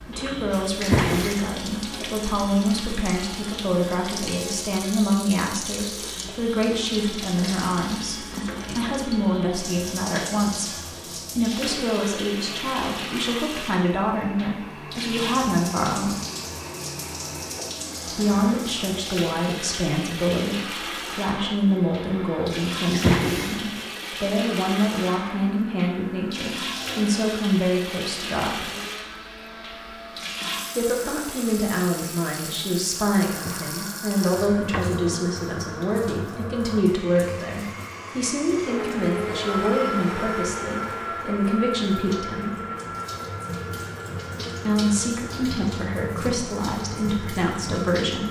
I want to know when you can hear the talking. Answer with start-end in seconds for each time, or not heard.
0.1-16.2, 18.1-28.7, 30.8-42.5, 44.6-48.2.